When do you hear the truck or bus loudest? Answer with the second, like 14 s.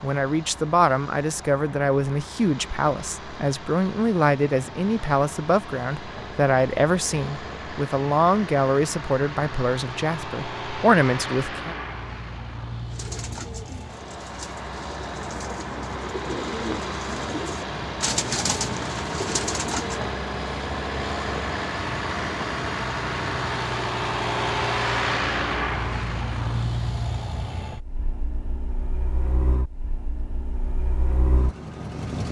25 s.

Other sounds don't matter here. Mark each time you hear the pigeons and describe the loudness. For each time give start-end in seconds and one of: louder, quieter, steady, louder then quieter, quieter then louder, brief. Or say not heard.
12.9-20.1 louder.